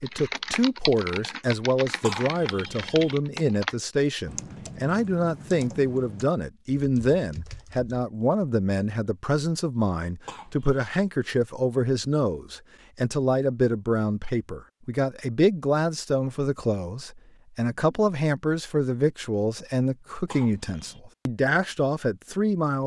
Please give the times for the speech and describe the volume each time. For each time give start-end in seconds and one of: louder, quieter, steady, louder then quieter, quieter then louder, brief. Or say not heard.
0.0-22.8 steady.